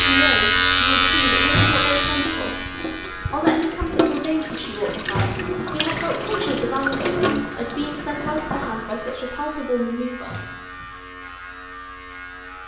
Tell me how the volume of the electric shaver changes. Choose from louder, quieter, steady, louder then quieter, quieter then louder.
quieter.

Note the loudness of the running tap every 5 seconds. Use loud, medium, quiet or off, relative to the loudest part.
loud, loud, off.